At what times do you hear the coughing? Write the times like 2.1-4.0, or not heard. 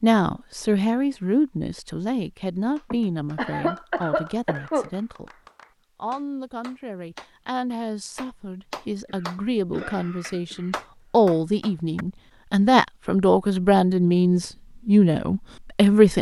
2.9-4.9, 9.1-10.8.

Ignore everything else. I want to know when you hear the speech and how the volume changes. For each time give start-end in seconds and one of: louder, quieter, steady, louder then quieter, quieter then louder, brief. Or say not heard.
0.0-5.3 quieter
6.0-16.1 louder.